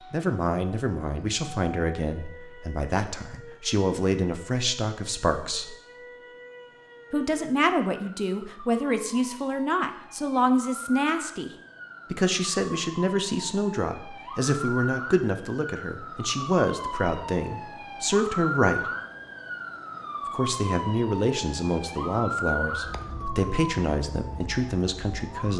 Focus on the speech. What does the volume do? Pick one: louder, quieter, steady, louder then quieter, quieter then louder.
steady.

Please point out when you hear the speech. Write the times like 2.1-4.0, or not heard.
0.0-5.8, 7.1-11.5, 12.1-18.9, 20.2-25.5.